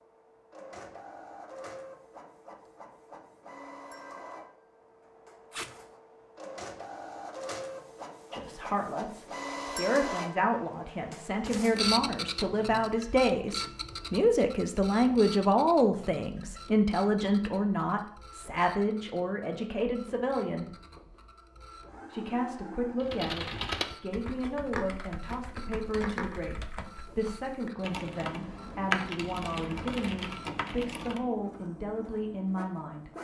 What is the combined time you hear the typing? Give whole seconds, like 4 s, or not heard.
8 s.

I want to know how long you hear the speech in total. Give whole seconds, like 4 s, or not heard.
23 s.